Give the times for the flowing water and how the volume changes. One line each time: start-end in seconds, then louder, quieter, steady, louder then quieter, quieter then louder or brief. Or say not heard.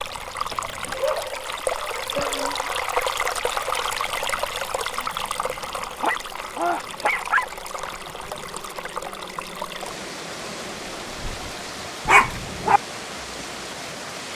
0.0-14.3 quieter.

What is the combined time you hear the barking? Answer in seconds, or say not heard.
4 s.